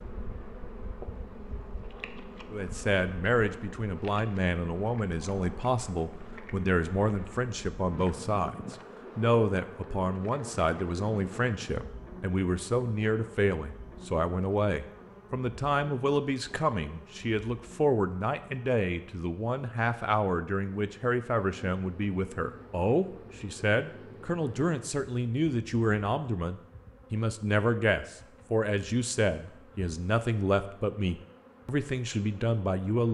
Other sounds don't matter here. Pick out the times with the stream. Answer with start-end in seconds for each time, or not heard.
not heard.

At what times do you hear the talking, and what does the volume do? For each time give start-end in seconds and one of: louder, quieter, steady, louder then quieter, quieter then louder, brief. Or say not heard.
2.5-33.0 steady.